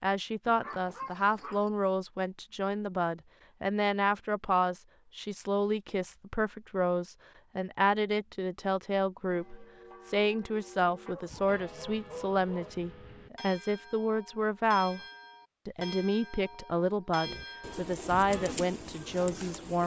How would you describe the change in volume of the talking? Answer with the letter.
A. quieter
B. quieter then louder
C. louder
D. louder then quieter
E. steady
E.